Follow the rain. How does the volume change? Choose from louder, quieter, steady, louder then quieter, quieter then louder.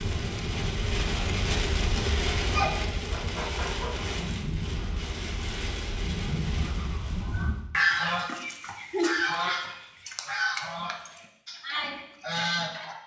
quieter.